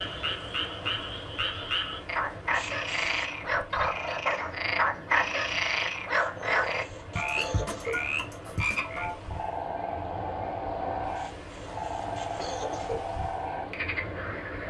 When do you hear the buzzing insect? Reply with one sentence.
You can't hear the buzzing insect here.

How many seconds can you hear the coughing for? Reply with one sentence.
You can hear the coughing for 5 seconds altogether.